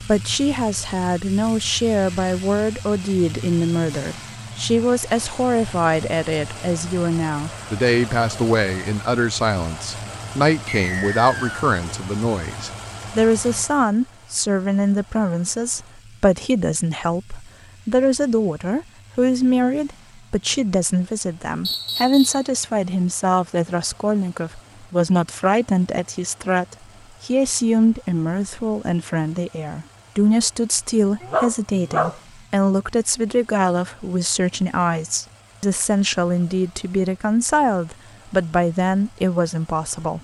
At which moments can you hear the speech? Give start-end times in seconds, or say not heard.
0.0-40.1.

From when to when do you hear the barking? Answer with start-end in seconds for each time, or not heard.
31.2-32.1.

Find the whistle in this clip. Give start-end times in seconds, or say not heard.
10.7-11.6, 21.6-22.4.